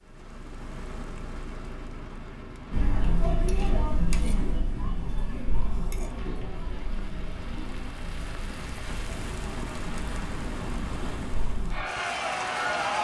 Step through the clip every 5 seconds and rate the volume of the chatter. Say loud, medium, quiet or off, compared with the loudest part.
loud, medium, loud.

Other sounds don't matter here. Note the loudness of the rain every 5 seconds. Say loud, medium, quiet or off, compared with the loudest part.
medium, medium, loud.